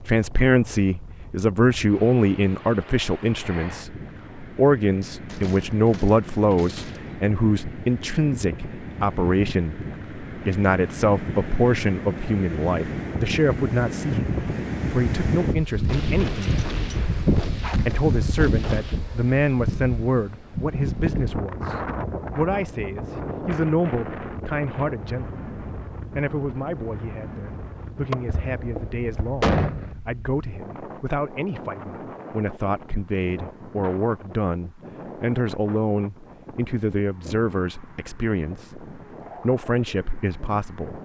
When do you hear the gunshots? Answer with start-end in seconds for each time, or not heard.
5.2-7.2, 15.8-19.0, 28.1-29.9.